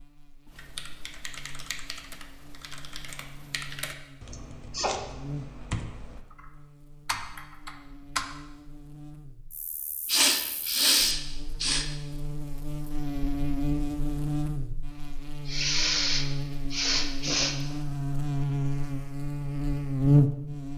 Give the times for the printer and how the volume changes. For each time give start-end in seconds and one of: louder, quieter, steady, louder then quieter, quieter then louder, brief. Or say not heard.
not heard.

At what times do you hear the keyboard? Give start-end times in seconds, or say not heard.
0.5-8.3.